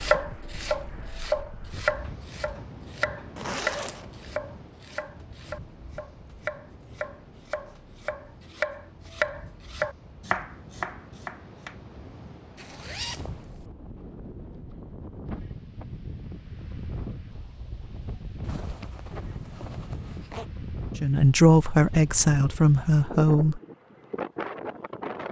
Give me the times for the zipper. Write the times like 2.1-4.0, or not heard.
3.4-4.1, 12.6-13.7, 18.4-20.4.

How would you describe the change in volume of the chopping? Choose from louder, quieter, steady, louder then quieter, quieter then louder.
quieter then louder.